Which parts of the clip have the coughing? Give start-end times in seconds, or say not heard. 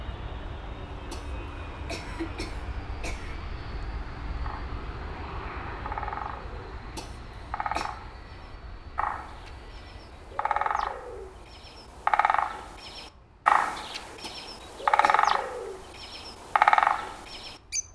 1.1-3.4, 7.0-8.0, 14.2-15.2.